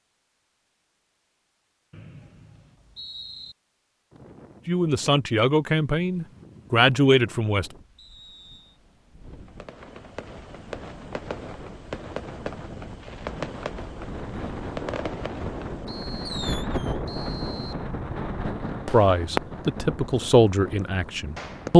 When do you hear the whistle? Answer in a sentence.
You can hear the whistle from 1.9 to 3.5 s, from 8.0 to 8.8 s and from 15.8 to 17.9 s.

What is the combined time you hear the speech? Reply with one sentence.
You can hear the speech for 6 seconds altogether.